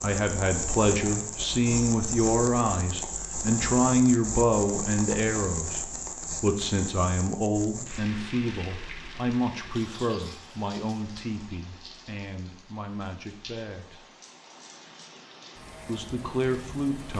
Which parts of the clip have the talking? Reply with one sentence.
You can hear the talking from 0.0 to 14.0 s and from 15.8 to 17.1 s.